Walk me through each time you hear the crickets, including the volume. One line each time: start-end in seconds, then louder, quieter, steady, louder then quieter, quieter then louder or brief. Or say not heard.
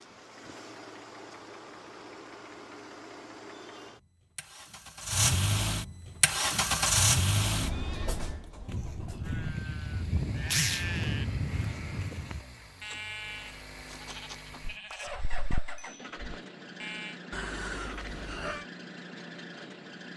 not heard.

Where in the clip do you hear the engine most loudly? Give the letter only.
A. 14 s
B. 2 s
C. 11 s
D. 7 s
D.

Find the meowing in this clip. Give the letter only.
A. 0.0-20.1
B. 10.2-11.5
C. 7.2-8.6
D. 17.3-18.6
D.